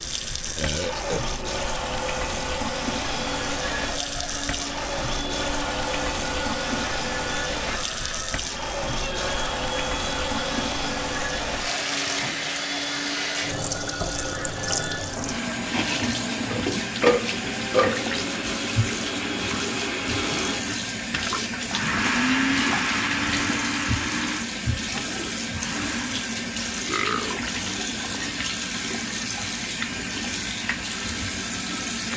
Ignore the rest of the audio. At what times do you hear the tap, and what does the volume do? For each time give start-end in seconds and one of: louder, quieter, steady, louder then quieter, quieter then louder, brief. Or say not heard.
0.0-32.1 steady.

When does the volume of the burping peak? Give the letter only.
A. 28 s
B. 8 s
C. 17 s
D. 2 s
C.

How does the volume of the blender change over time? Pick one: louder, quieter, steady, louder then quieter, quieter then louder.
louder.